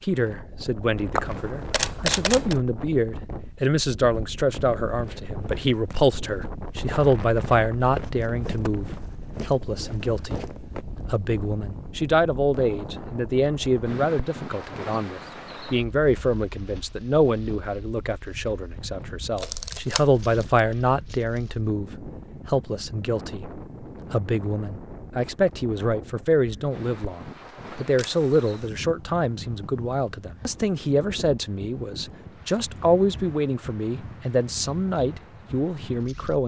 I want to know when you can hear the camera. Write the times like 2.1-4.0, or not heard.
1.1-2.5, 19.4-20.4, 27.9-28.8.